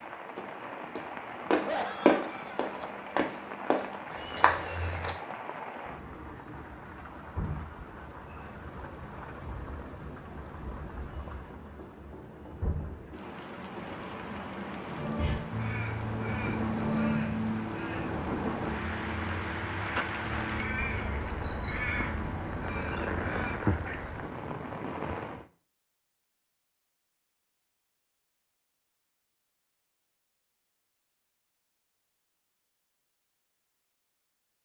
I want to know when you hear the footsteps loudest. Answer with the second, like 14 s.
2 s.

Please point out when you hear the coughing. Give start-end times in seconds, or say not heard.
1.6-2.9.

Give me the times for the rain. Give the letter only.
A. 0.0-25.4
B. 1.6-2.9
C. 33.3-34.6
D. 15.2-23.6
A.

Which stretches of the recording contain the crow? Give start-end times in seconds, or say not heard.
15.2-23.6.